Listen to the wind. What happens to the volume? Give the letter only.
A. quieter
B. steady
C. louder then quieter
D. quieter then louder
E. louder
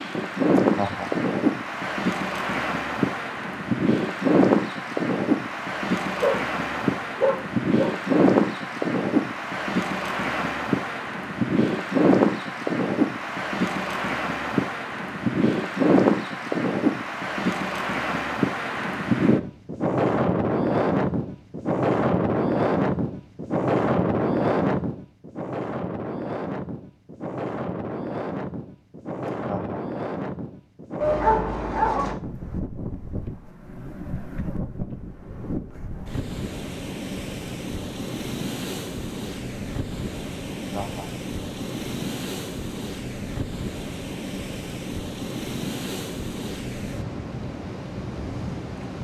A.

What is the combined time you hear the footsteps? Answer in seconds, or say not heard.
not heard.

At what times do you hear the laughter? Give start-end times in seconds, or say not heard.
0.6-1.2, 29.4-29.8, 40.6-41.2.